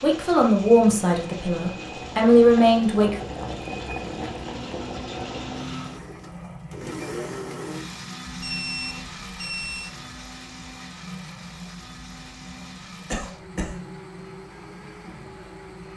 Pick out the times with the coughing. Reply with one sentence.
The coughing can be heard from 13.1 to 13.8 s.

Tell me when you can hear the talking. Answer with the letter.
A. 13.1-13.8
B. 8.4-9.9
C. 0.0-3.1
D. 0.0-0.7
C.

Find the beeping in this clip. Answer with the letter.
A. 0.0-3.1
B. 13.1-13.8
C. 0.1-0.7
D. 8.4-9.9
D.